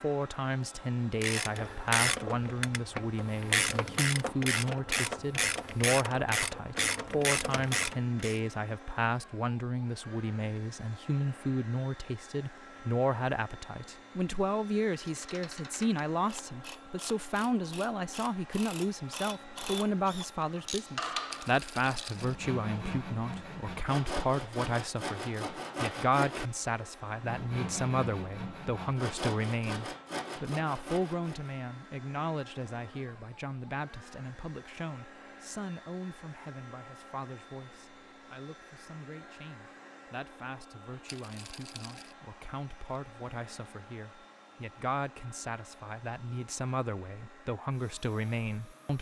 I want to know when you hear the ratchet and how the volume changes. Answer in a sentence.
You can hear the ratchet from 1.2 to 8.4 s, at a steady volume; and from 15.0 to 22.2 s, getting louder.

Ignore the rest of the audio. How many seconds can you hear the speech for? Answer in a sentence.
The speech can be heard for 49 seconds in total.